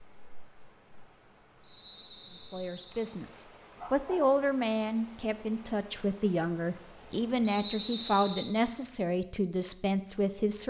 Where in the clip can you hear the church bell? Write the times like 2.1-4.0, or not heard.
not heard.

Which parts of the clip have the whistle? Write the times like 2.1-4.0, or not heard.
1.6-3.0, 7.5-8.6.